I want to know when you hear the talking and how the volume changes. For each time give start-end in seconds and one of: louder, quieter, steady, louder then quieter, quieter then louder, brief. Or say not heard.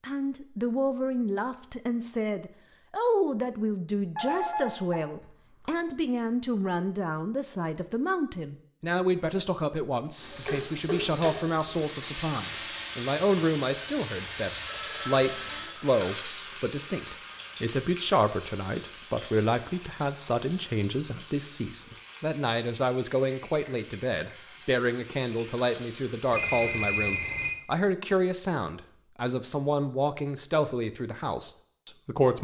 0.0-32.3 steady.